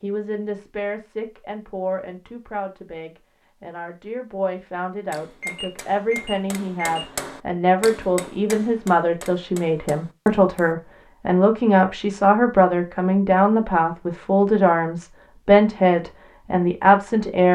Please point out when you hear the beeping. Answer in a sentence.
You can hear the beeping from 5.4 to 7.0 s.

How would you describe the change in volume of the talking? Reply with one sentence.
The loudness of the talking goes up.